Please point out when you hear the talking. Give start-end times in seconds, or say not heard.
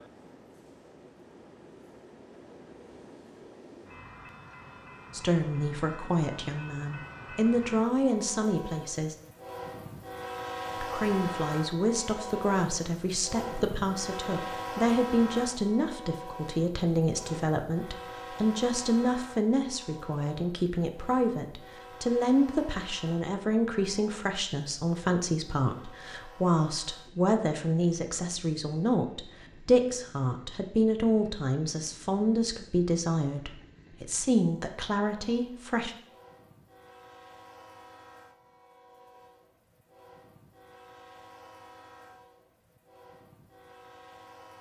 5.1-9.2, 10.8-36.0.